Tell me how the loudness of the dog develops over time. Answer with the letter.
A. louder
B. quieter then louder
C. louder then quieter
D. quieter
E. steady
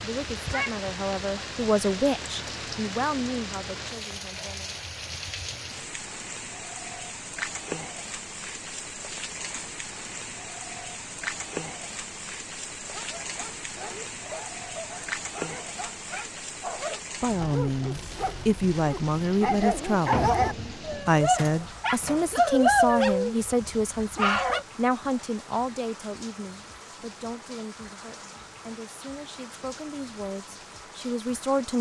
A.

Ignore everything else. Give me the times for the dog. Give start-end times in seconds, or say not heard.
12.8-24.6.